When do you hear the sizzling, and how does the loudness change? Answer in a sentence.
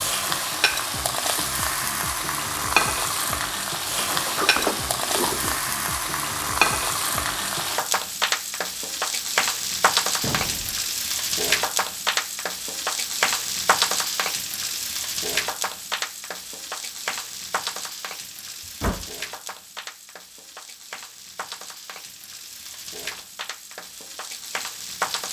You can hear the sizzling from 0.0 to 25.2 s, getting quieter.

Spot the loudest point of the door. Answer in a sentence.
The volume of the door peaks at 5 seconds.